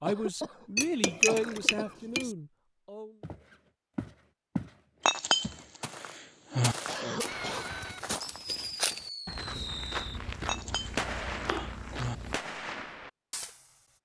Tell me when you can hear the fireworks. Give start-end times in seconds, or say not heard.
7.2-13.8.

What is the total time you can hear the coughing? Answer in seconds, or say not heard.
3 s.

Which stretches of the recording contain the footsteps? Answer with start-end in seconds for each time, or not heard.
3.2-4.8, 5.4-12.3.